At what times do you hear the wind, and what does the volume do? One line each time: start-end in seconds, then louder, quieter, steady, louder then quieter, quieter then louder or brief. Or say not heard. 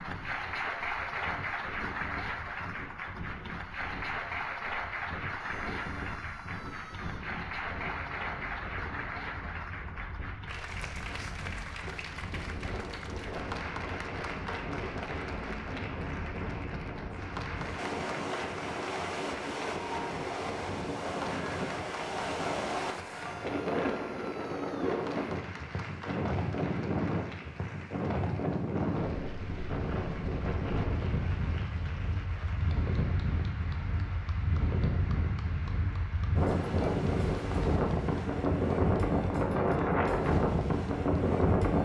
0.0-41.7 louder.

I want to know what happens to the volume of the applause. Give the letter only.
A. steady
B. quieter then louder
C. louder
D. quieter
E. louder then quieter
D.